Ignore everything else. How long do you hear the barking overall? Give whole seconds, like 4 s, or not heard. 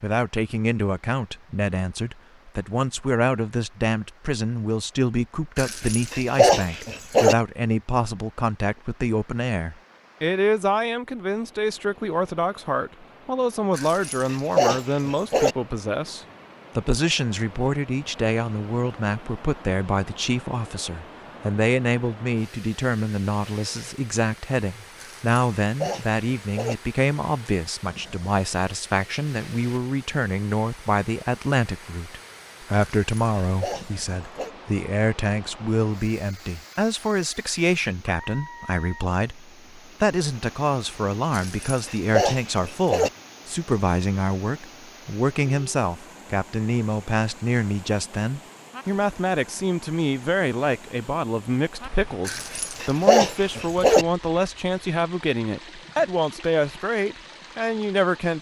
11 s.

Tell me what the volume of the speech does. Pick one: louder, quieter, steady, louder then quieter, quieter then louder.
steady.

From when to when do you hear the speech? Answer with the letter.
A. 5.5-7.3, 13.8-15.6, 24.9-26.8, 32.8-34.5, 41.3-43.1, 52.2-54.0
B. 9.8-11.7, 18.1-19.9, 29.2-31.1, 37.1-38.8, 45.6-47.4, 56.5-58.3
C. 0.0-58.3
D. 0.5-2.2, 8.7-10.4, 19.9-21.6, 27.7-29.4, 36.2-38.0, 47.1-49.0
C.